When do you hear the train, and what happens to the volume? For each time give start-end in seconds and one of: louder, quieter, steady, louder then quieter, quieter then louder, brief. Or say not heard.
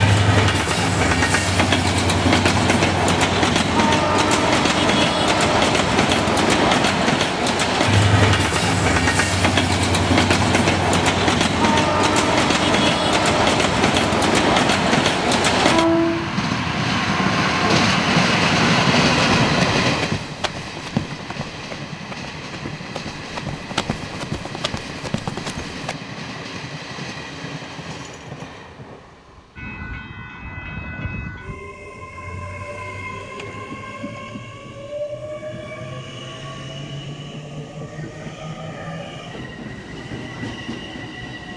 0.0-41.5 quieter.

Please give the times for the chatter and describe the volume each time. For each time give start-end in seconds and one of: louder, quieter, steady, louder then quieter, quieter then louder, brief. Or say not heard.
not heard.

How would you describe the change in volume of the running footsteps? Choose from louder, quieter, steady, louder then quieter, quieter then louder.
quieter then louder.